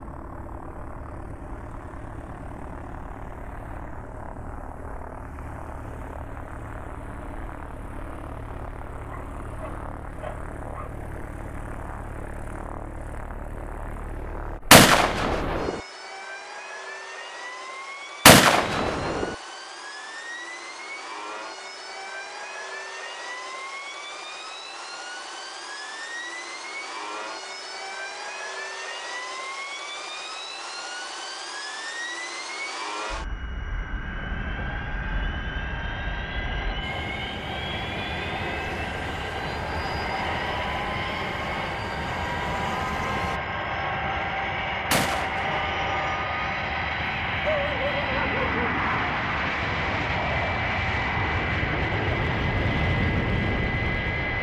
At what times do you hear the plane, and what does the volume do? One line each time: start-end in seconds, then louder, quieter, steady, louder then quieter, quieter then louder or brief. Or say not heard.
0.0-54.3 louder.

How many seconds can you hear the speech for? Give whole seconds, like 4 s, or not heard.
not heard.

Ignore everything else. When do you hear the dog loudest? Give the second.
48 s.